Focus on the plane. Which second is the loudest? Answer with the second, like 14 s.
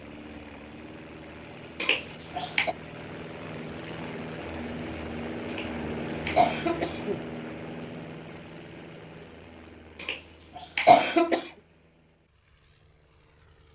6 s.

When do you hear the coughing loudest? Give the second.
11 s.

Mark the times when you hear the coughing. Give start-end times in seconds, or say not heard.
1.8-2.8, 5.5-7.2, 10.0-11.5.